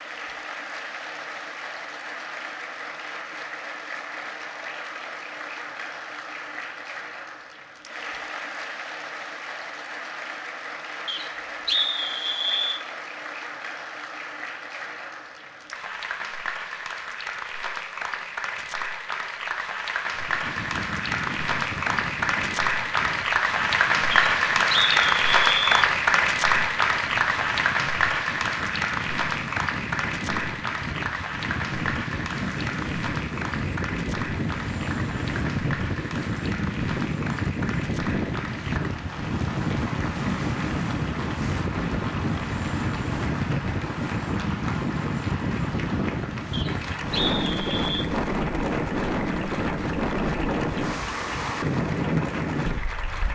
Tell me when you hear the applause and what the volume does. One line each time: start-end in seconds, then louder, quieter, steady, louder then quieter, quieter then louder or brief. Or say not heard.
0.0-53.2 louder then quieter.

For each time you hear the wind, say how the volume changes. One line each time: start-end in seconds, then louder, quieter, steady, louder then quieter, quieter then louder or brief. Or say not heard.
20.1-53.2 louder.